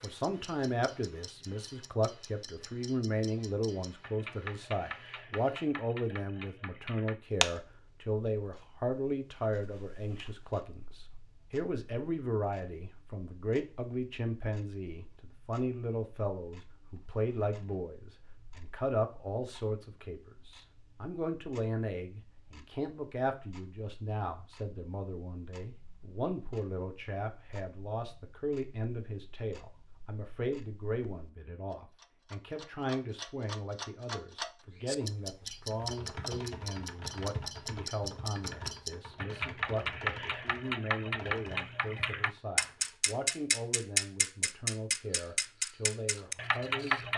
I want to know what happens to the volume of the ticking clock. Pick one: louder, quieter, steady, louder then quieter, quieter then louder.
quieter then louder.